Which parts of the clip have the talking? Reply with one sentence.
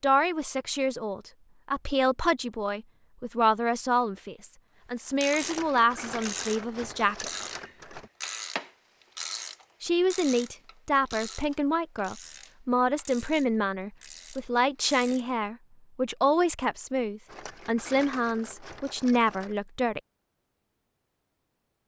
The talking can be heard from 0.0 to 7.2 s and from 9.8 to 20.0 s.